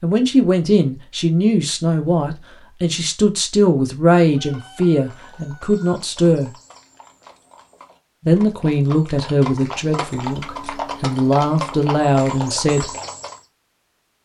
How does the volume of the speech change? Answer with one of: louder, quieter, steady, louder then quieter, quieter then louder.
steady.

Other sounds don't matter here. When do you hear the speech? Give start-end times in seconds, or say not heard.
0.0-6.5, 8.2-12.8.